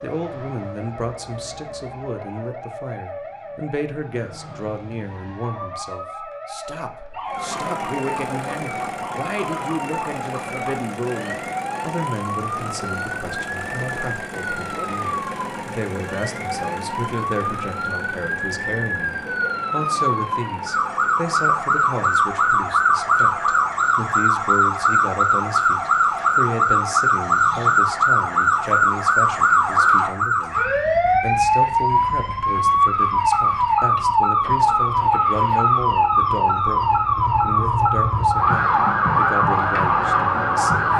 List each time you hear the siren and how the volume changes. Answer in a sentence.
The siren can be heard from 0.0 to 40.9 s, getting louder.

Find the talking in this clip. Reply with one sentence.
You can hear the talking from 0.0 to 40.9 s.